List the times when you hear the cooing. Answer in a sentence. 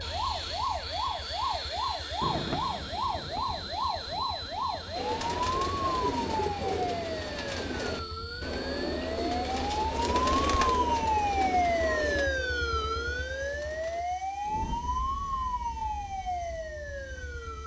The cooing can be heard from 5.0 to 14.1 s.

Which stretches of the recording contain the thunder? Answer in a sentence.
The thunder can be heard from 2.2 to 5.1 s.